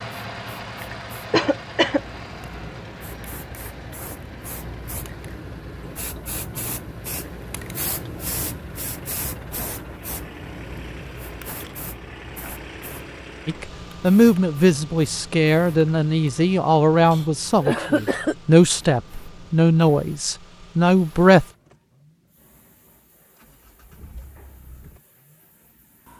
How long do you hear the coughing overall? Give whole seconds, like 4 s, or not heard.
2 s.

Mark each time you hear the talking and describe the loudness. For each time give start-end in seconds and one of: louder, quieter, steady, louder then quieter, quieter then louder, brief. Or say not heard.
13.4-21.4 steady.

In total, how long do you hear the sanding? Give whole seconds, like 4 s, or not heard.
not heard.